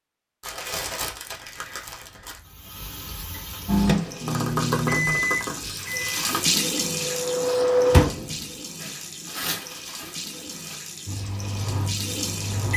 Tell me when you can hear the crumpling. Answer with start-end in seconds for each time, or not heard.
0.4-2.4, 4.2-6.5, 8.8-10.8.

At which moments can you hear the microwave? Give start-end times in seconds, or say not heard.
3.6-8.6, 11.1-12.7.